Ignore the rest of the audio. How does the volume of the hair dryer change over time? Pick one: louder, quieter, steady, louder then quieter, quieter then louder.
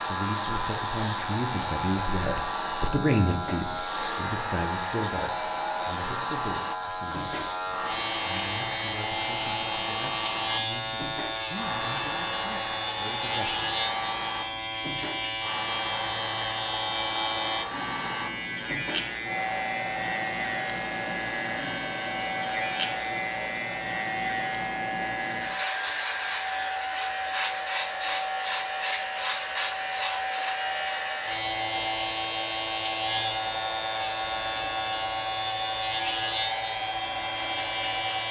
steady.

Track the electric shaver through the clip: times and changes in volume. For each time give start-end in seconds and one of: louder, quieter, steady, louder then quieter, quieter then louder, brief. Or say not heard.
0.0-38.2 steady.